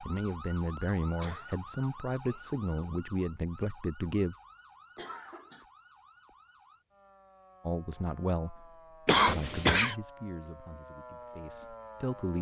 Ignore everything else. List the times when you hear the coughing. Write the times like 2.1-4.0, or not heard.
1.1-2.4, 5.0-5.7, 9.1-9.9.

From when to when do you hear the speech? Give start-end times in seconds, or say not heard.
0.0-4.3, 7.7-12.3.